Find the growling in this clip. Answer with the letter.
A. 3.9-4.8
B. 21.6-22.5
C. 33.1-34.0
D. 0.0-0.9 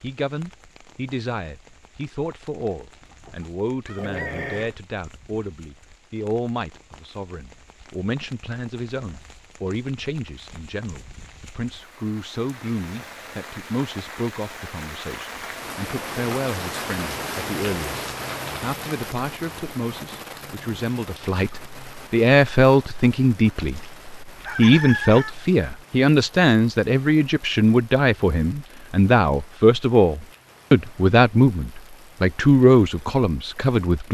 A.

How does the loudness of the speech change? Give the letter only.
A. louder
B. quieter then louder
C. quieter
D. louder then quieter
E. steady
A.